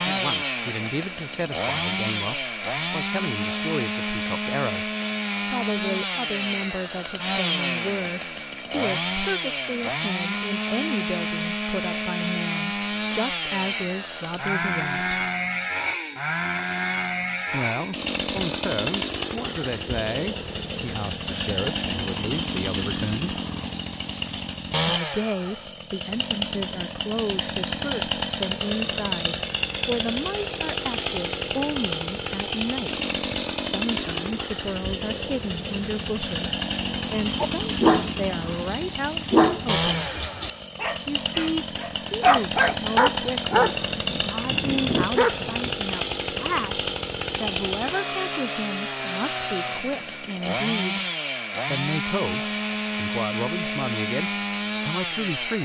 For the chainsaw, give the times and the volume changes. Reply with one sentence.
You can hear the chainsaw from 0.0 to 55.6 s, at a steady volume.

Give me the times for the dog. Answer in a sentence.
The dog can be heard from 37.4 to 45.8 s.